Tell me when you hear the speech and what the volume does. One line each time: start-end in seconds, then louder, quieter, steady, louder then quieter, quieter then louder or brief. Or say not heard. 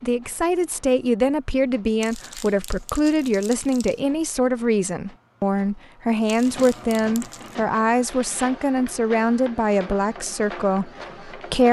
0.0-11.6 steady.